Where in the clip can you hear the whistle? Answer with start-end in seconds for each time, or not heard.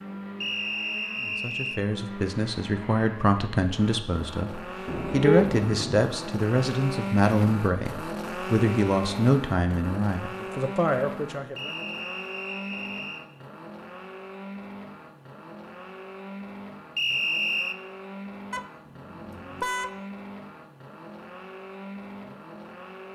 0.4-1.8, 11.6-13.2, 16.9-17.8.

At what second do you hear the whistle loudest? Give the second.
17 s.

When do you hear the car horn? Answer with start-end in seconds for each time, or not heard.
4.8-6.0, 18.5-19.9.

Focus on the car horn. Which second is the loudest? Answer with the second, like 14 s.
5 s.